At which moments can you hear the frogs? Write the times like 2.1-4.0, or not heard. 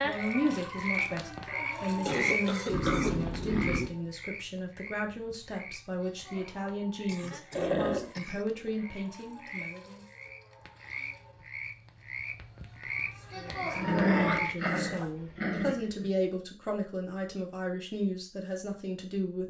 0.0-15.1.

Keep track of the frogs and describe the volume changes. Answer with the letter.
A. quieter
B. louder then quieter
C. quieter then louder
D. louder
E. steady
C.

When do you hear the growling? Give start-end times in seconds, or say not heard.
2.6-4.0, 7.5-8.1, 13.8-16.1.